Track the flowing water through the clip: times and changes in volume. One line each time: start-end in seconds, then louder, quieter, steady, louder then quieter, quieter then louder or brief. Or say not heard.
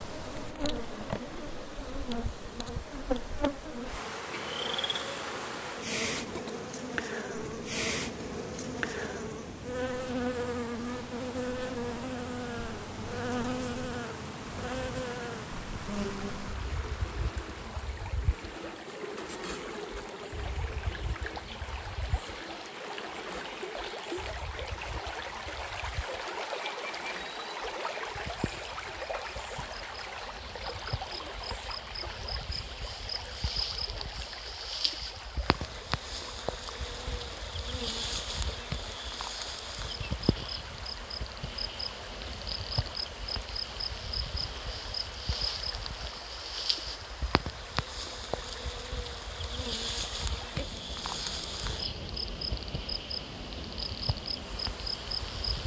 0.0-55.6 louder then quieter.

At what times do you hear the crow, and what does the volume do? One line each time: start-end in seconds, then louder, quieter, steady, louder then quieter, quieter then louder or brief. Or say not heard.
not heard.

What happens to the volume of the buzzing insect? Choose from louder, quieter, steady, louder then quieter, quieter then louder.
quieter then louder.